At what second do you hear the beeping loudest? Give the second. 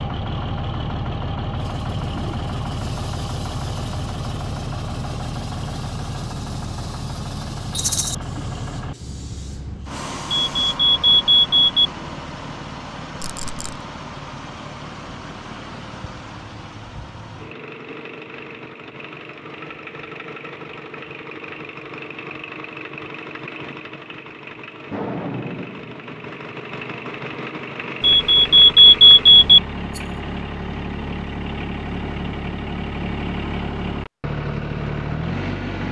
29 s.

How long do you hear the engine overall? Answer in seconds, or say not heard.
36 s.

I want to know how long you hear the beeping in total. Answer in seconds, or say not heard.
3 s.